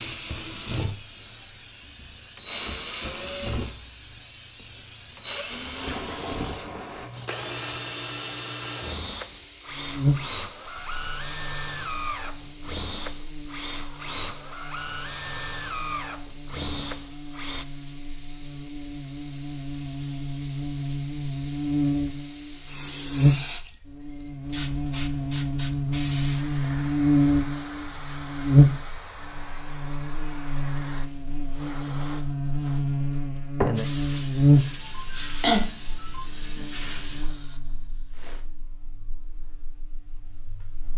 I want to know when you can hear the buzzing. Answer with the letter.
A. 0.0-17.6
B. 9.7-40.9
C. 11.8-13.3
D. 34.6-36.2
B.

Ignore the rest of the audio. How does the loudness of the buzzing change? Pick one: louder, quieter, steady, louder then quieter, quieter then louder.
louder.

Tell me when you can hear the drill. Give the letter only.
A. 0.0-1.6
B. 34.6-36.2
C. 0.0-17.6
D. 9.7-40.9
C.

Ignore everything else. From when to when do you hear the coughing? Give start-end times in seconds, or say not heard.
34.6-36.2.